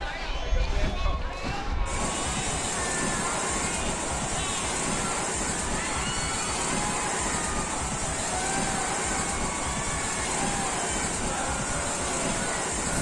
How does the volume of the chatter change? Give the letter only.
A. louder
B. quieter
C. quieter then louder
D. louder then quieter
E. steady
E.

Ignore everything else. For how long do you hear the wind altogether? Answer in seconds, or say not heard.
13 s.